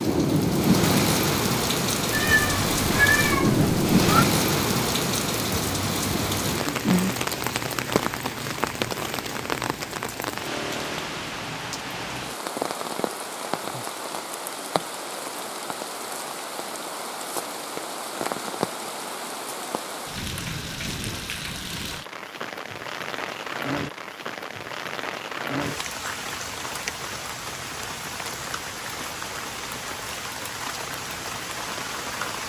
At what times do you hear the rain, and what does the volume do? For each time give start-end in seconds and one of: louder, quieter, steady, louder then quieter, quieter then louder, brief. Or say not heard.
0.0-32.4 quieter.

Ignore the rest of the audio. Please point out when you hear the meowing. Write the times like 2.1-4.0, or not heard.
2.1-4.2.